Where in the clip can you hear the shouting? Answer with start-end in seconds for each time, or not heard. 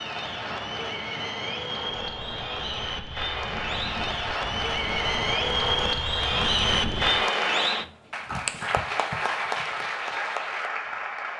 not heard.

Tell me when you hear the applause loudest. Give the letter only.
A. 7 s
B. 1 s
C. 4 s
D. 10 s
A.